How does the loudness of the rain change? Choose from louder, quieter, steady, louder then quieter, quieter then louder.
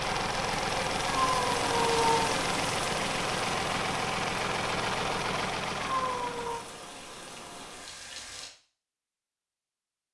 quieter.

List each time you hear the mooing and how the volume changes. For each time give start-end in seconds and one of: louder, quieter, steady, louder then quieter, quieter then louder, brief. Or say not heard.
not heard.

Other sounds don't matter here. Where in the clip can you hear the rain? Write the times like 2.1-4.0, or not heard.
0.1-8.6.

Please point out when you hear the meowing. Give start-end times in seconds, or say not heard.
1.1-2.4, 5.8-6.6.